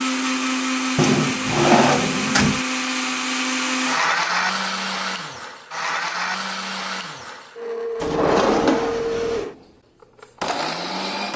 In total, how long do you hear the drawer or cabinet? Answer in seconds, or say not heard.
3 s.